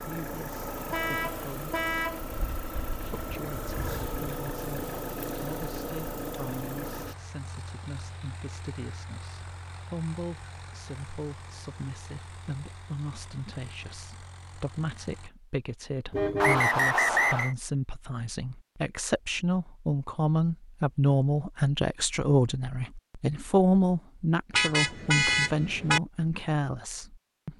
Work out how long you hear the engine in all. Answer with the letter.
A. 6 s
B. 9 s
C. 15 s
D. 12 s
C.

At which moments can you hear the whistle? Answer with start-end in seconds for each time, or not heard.
16.4-17.6.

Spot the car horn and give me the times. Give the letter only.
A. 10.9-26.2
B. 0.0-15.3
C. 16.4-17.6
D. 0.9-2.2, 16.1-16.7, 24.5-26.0
D.